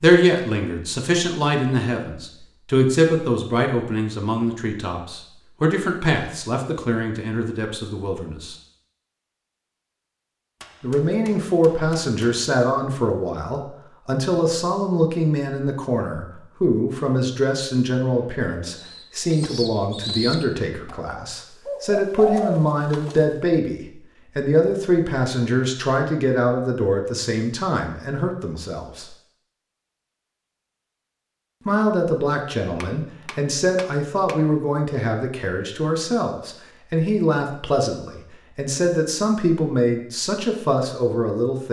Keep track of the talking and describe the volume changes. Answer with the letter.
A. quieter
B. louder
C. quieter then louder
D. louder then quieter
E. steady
E.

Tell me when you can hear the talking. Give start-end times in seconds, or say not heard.
0.0-8.6, 10.8-29.1, 31.6-41.6.